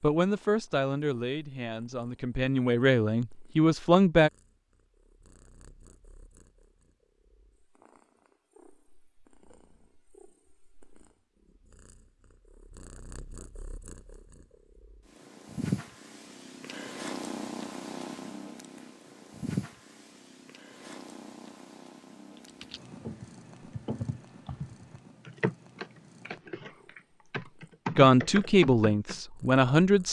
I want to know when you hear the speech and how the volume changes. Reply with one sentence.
You can hear the speech from 0.0 to 4.3 s, getting quieter then louder; and briefly from 27.9 to 30.0 s.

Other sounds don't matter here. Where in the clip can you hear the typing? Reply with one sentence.
You can hear the typing from 22.4 to 29.2 s.